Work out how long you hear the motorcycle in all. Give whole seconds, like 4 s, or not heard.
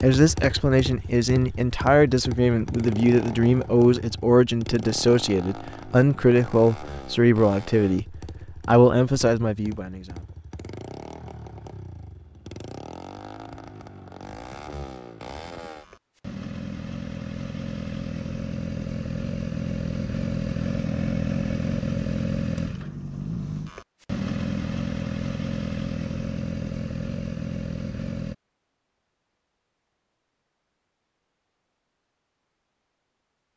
28 s.